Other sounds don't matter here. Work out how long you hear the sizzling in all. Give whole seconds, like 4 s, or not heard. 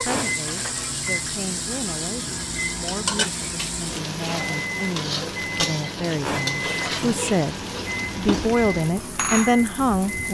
10 s.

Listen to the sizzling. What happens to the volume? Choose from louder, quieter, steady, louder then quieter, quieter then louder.
steady.